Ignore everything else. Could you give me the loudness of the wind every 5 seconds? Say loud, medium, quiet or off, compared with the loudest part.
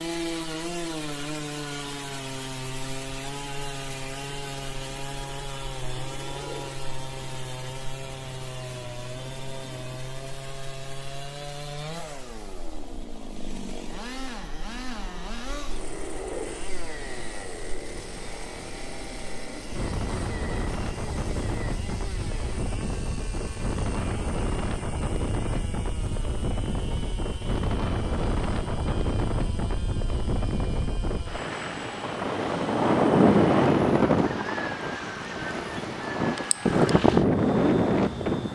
off, quiet, quiet, quiet, medium, medium, loud, loud.